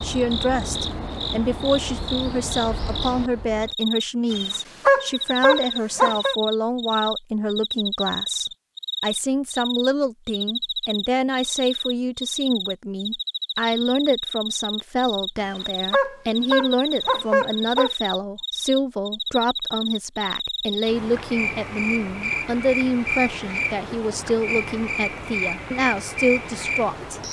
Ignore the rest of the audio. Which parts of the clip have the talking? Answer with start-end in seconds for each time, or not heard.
0.0-27.2.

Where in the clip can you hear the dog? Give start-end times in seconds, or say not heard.
4.3-6.3, 15.3-17.9.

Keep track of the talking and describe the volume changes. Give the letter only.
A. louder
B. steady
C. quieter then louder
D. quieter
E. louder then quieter
B.